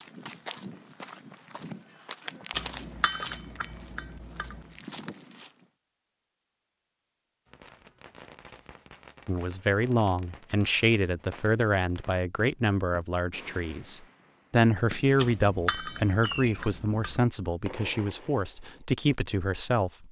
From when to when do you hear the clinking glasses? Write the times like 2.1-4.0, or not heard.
2.5-4.7, 15.2-17.2.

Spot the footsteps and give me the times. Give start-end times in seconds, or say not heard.
0.0-5.7.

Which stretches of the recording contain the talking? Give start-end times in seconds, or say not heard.
9.2-20.0.